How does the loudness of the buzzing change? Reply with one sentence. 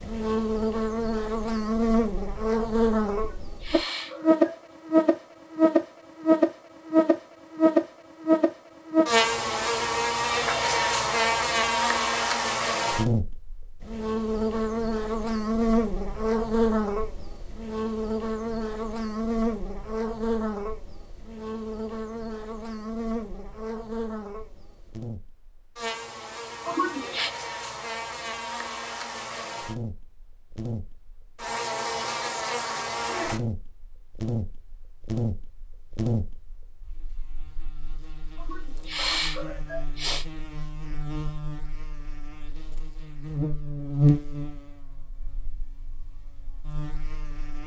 The volume of the buzzing goes down.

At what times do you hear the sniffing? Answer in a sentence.
You can hear the sniffing from 3.1 to 4.6 s, from 26.6 to 27.3 s and from 38.4 to 40.2 s.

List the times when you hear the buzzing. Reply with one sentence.
You can hear the buzzing from 0.0 to 47.6 s.